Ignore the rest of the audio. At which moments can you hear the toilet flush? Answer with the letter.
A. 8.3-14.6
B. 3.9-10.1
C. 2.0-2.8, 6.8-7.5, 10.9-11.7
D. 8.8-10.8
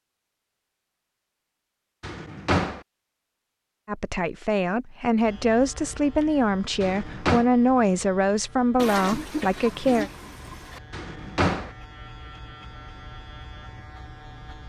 D.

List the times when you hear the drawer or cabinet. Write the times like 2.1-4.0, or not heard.
2.0-2.8, 6.8-7.5, 10.9-11.7.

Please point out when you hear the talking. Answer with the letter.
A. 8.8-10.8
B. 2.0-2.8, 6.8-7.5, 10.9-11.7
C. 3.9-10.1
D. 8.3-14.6
C.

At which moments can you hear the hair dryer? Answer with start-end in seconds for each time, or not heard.
not heard.